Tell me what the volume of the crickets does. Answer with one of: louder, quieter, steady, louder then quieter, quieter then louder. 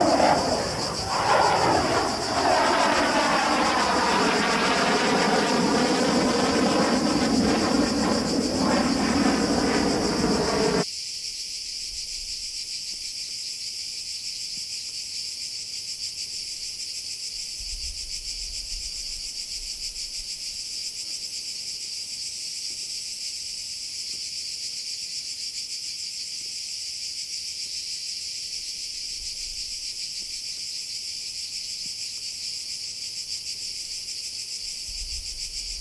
steady.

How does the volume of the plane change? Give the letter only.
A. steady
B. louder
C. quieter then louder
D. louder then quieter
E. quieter
A.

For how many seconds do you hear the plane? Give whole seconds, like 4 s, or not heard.
11 s.